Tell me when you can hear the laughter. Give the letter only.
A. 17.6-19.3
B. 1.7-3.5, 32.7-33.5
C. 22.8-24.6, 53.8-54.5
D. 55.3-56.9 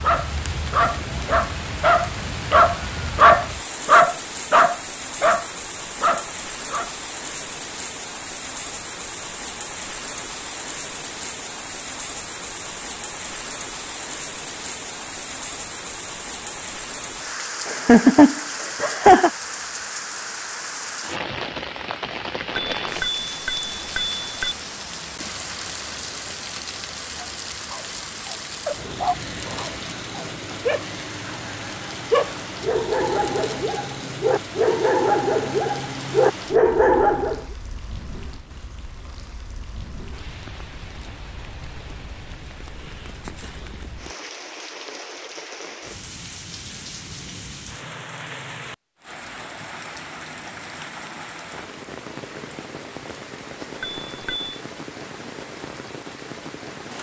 A.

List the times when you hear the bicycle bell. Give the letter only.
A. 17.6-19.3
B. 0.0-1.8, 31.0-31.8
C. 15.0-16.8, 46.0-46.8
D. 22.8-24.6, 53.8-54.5
D.